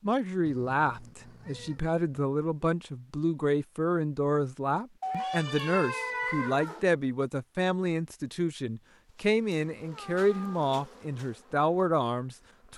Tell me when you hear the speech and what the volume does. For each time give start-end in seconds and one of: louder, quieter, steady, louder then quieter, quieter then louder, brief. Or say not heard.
0.0-12.7 steady.